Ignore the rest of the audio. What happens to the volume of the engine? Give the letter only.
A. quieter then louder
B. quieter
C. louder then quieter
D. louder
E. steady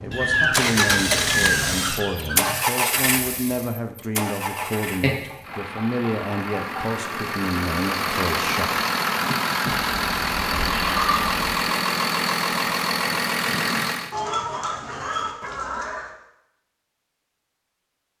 A.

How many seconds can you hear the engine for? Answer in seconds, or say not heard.
14 s.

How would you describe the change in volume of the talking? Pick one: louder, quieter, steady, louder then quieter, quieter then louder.
steady.